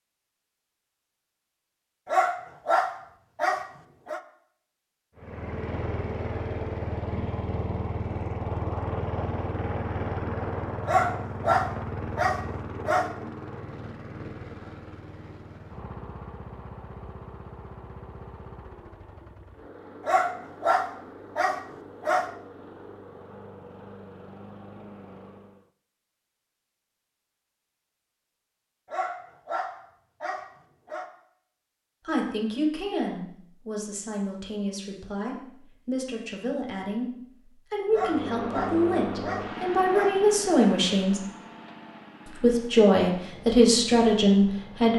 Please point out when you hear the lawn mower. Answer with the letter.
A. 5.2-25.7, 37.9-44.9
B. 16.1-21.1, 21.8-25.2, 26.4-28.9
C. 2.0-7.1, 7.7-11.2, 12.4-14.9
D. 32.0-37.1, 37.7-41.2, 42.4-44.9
A.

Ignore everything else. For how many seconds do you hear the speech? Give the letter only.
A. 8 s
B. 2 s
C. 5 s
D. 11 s
D.